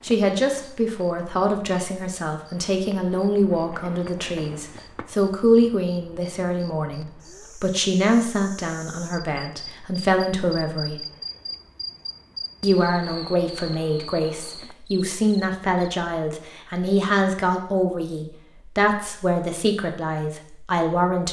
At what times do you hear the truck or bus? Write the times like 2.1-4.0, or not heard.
not heard.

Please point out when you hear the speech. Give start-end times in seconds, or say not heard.
0.0-11.0, 12.6-21.2.